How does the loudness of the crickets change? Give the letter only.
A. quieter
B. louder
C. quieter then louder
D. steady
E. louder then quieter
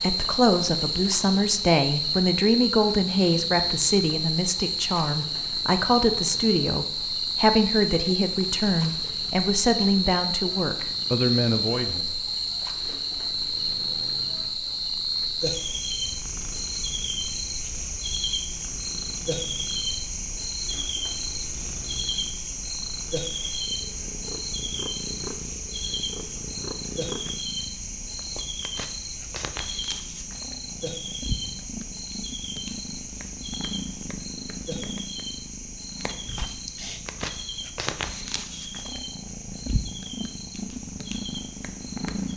A.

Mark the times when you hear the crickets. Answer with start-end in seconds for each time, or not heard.
0.0-42.3.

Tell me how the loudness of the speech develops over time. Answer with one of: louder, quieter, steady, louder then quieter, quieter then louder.
steady.